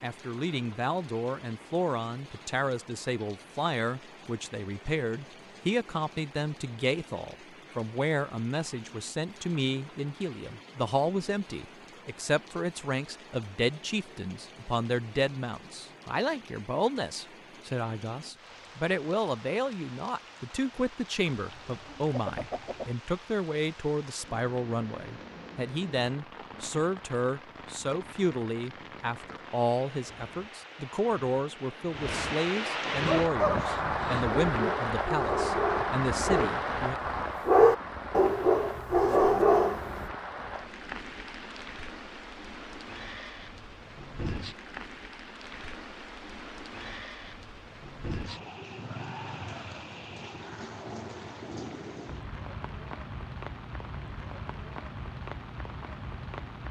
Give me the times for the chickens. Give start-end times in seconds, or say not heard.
21.3-22.9.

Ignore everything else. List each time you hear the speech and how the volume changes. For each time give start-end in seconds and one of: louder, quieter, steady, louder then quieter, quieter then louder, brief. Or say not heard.
0.0-37.0 steady.